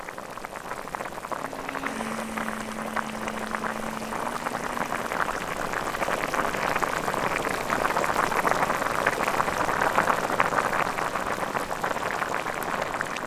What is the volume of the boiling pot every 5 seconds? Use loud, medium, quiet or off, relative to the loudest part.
medium, loud, loud.